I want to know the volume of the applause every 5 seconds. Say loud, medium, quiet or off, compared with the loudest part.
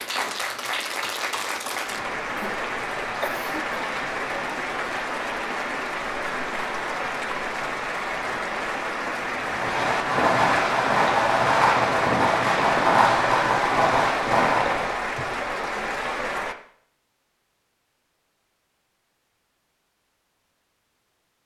loud, loud, loud, loud, off.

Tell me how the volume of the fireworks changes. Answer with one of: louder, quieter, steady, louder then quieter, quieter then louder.
steady.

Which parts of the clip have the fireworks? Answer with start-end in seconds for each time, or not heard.
9.4-15.0.